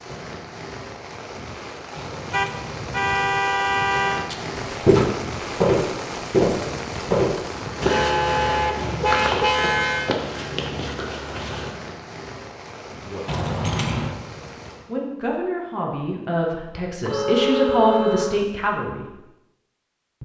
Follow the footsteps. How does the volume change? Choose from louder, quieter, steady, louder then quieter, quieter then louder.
quieter.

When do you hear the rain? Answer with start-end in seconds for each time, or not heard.
0.0-14.9.